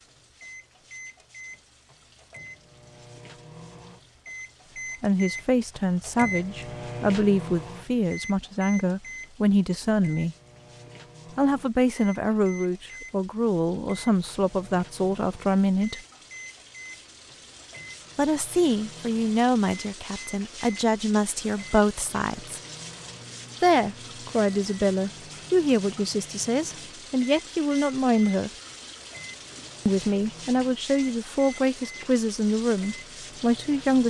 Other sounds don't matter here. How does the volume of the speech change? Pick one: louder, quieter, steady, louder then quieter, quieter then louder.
steady.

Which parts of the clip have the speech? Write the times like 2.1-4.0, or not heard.
5.0-10.3, 11.3-16.0, 18.1-22.6, 23.6-28.5, 29.9-34.0.